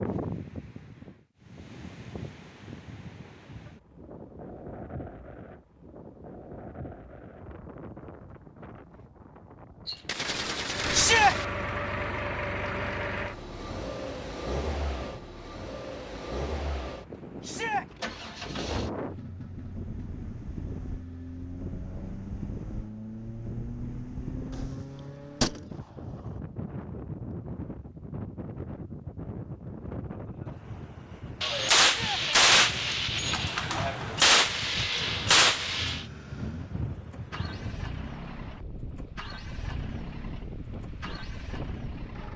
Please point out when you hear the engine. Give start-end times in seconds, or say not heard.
10.7-25.8, 35.5-42.3.